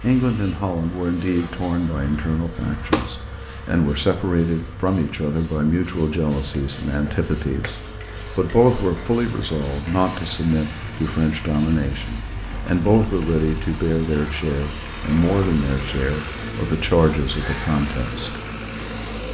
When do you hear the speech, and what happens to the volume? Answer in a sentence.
The speech can be heard from 0.0 to 18.4 s, at a steady volume.